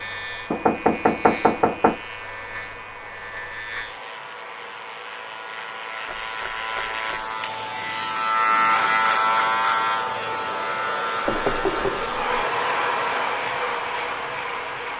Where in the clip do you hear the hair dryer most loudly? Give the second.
13 s.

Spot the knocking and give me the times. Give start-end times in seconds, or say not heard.
0.5-2.0, 6.0-7.3, 11.2-12.4.